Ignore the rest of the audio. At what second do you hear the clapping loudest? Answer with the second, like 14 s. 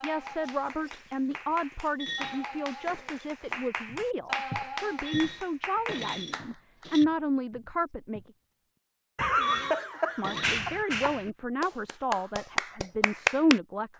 13 s.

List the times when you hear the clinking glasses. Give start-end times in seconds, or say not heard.
2.0-2.5, 5.0-7.0, 9.4-10.6.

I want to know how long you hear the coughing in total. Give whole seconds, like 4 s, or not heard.
2 s.